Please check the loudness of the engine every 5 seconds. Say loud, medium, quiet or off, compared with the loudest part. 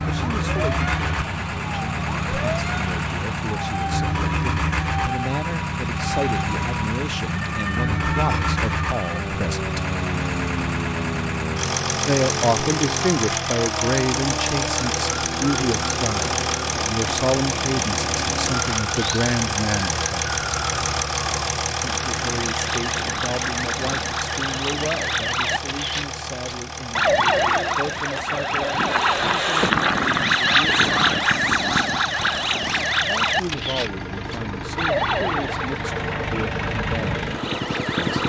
loud, loud, loud, loud, loud, medium, medium, loud.